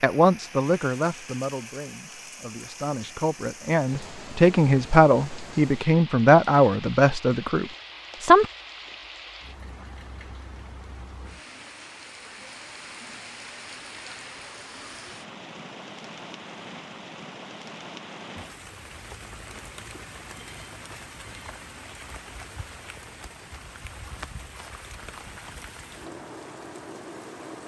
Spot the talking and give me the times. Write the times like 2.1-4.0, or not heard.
0.0-8.4.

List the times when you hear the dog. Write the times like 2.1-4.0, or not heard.
not heard.